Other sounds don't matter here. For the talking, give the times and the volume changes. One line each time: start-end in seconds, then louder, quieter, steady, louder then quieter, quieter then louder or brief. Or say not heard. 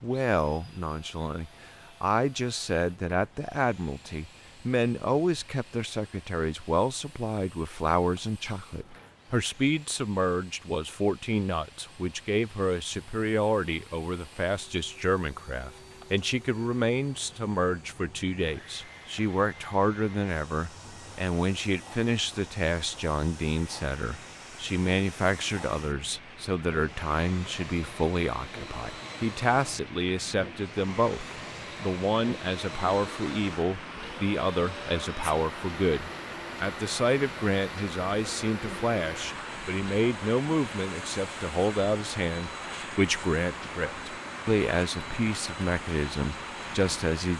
0.0-47.3 steady.